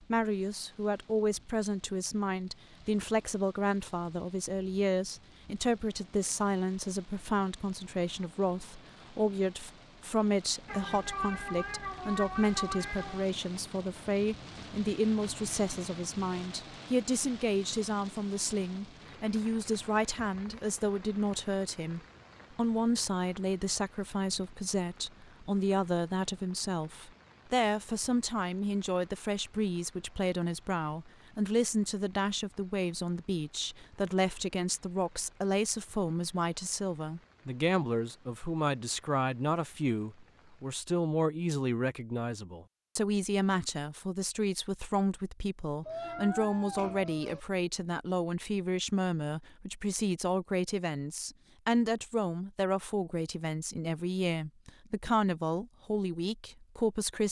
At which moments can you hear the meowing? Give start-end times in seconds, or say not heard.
10.7-13.2, 45.9-47.4.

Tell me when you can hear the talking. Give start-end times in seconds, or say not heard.
0.1-57.2.